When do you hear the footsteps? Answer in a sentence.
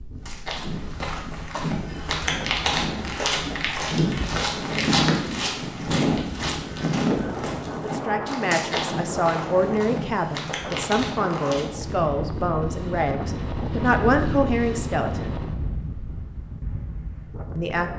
The footsteps can be heard from 0.1 to 11.9 s.